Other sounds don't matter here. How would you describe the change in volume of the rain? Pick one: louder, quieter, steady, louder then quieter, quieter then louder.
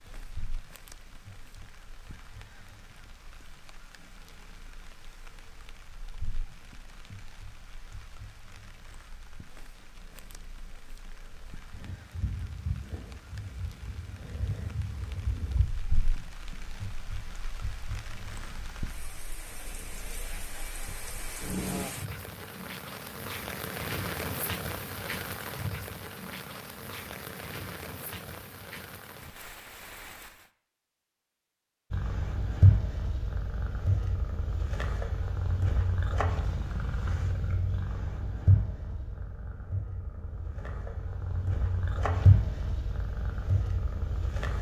louder.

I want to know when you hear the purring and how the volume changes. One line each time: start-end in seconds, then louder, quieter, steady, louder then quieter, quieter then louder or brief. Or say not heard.
0.1-21.9 louder then quieter
31.9-44.5 quieter then louder.